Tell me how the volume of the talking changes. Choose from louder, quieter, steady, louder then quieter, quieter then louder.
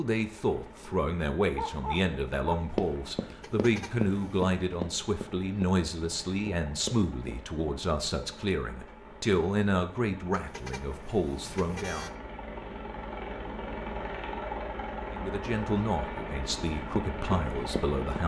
steady.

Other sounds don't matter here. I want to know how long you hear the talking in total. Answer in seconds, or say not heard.
15 s.